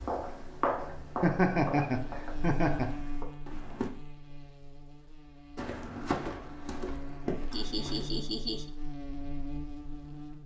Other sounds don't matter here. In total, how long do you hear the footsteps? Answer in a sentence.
The footsteps can be heard for 7 seconds in total.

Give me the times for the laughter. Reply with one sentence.
You can hear the laughter from 1.2 to 3.0 s and from 7.5 to 8.7 s.